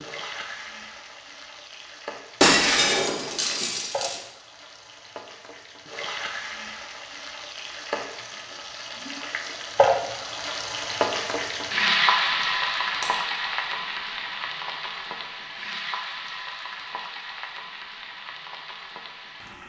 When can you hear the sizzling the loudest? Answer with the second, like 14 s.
12 s.